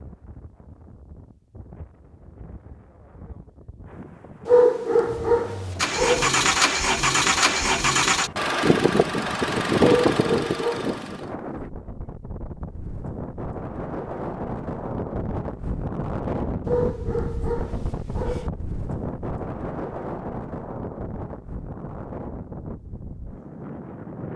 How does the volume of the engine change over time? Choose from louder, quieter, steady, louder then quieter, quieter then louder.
steady.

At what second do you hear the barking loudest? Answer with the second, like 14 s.
5 s.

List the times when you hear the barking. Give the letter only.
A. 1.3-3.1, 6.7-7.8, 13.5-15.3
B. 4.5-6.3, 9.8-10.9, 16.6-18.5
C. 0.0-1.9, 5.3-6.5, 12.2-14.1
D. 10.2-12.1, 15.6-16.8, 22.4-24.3
B.